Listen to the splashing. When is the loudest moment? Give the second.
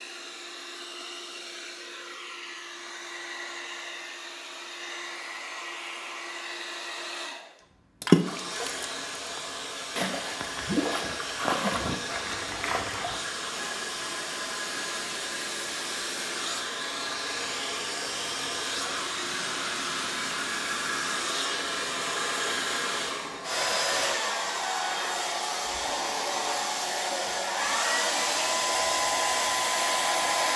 8 s.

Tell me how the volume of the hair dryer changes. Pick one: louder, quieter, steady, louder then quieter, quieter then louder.
louder.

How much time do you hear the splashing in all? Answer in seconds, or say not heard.
5 s.